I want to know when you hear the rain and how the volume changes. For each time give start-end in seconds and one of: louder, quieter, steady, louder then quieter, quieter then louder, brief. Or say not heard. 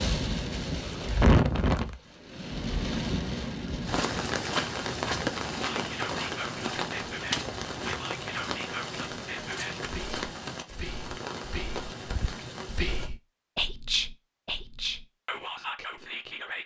0.0-13.1 quieter.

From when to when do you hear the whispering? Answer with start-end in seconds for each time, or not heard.
5.6-16.6.